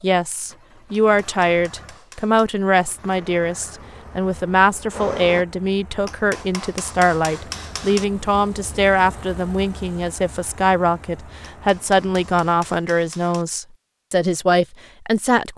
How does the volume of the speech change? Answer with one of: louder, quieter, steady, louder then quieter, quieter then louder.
steady.